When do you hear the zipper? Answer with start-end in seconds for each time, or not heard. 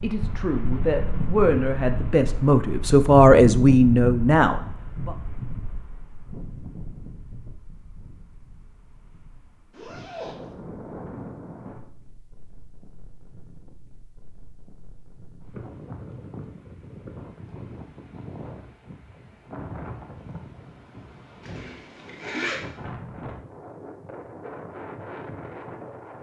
9.7-10.5, 21.4-22.6.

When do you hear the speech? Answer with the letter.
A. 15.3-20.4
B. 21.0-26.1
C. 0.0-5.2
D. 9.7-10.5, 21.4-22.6
C.